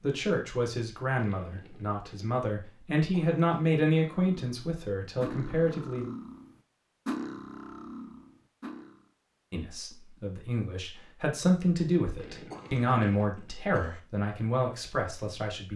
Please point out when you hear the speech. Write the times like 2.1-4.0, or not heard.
0.0-6.1, 9.5-15.7.